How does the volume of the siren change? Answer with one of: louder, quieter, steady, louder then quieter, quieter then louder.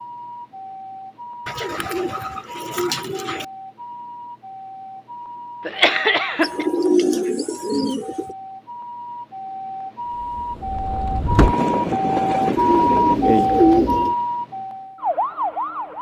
louder.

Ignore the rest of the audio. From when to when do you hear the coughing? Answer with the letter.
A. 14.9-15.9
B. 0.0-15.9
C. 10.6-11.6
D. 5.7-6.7
D.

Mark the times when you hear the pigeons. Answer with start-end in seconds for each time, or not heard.
1.4-3.5, 6.4-8.3, 12.6-14.2.